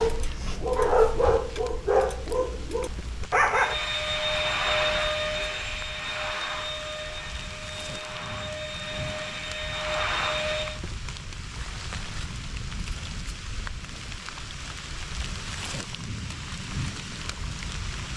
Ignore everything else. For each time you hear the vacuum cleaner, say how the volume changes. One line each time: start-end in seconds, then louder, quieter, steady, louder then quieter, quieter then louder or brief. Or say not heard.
3.5-10.8 quieter then louder.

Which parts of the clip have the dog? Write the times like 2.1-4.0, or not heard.
0.0-3.8.